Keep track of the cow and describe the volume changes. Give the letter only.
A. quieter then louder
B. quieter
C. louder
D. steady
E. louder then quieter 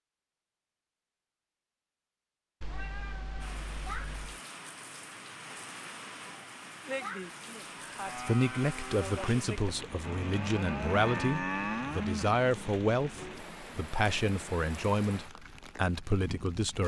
C.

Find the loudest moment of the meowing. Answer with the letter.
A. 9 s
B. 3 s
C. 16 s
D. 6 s
B.